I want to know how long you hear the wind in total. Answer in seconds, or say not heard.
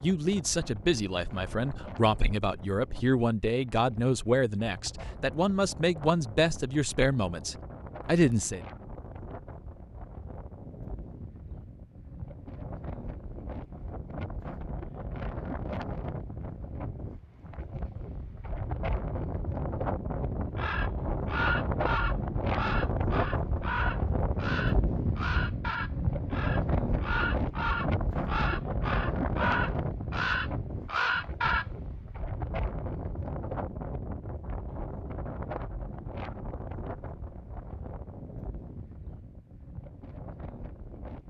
41 s.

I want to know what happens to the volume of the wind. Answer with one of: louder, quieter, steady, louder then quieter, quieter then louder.
louder then quieter.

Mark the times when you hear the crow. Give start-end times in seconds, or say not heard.
20.6-31.6.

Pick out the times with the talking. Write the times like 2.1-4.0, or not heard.
0.0-8.6.